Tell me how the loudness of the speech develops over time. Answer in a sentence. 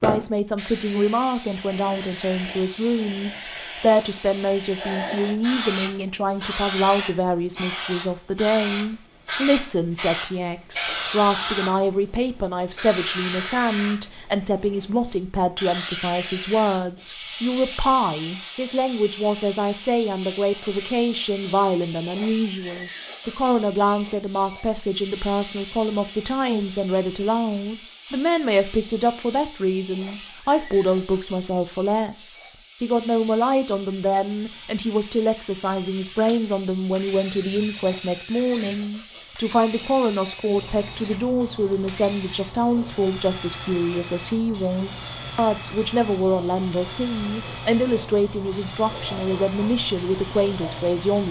The loudness of the speech stays about the same.